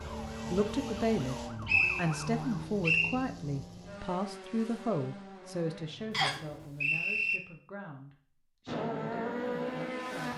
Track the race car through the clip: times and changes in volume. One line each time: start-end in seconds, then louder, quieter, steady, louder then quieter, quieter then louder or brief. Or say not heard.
0.0-6.7 quieter
8.7-10.3 brief.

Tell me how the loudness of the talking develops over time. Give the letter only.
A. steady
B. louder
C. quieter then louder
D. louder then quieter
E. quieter
E.